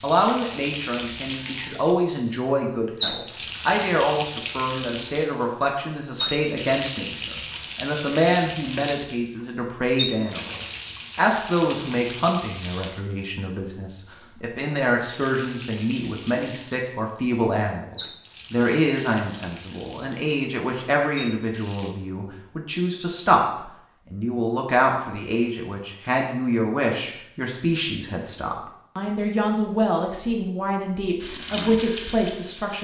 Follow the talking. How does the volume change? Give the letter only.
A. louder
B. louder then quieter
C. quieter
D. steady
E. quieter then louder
D.